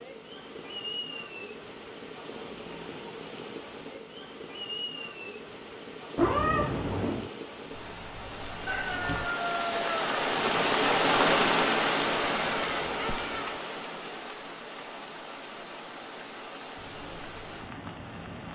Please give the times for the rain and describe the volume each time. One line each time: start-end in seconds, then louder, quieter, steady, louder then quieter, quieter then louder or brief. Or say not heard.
0.0-18.4 louder then quieter.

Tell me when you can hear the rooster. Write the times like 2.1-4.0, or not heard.
8.7-10.2.